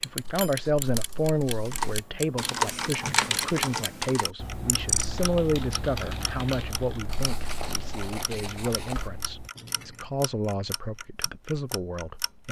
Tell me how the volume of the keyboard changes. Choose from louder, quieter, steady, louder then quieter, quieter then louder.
quieter.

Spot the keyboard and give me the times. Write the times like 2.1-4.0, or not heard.
1.6-10.1.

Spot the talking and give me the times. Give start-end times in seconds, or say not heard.
0.0-12.4.